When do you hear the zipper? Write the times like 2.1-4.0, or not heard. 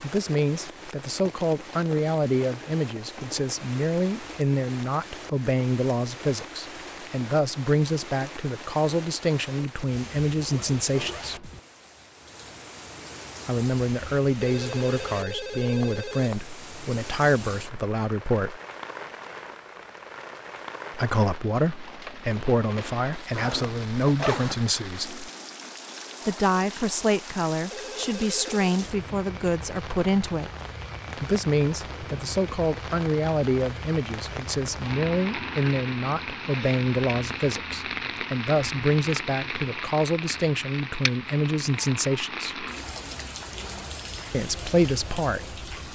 10.3-11.6, 23.4-24.6.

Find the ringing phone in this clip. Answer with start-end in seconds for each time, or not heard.
14.4-16.4, 27.7-28.8.